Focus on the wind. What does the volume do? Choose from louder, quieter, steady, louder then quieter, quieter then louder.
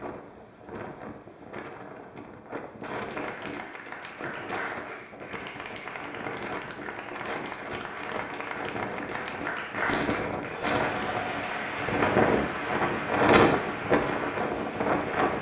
louder.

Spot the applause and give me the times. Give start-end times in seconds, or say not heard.
3.0-15.3.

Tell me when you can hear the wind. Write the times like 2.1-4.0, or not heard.
0.0-15.3.